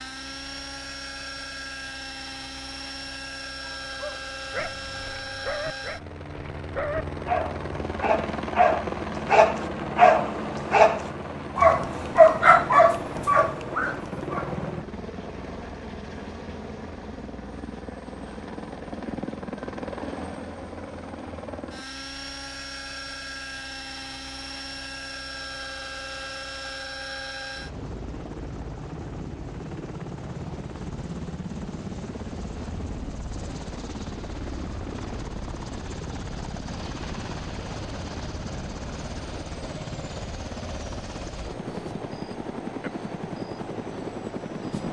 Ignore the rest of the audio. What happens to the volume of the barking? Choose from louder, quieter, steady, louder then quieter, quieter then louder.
louder.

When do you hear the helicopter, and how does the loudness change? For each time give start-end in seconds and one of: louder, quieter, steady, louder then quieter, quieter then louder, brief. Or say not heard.
0.0-44.8 steady.